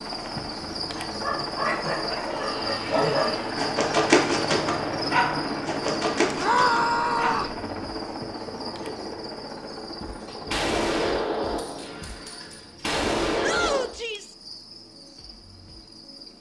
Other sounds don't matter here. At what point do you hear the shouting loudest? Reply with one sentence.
The loudest moment of the shouting is at 7 seconds.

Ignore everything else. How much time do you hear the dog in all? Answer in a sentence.
The dog can be heard for 6 seconds in total.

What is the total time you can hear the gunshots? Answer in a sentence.
The gunshots can be heard for 4 seconds in total.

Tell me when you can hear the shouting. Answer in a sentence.
You can hear the shouting from 2.0 to 3.6 s, from 6.3 to 7.5 s and from 13.4 to 14.3 s.